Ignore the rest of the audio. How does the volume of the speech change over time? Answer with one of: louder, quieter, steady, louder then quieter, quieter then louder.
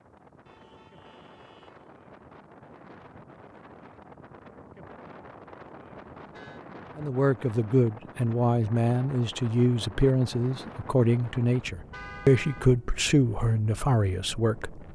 steady.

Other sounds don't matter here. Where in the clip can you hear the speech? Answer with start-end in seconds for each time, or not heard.
7.0-14.9.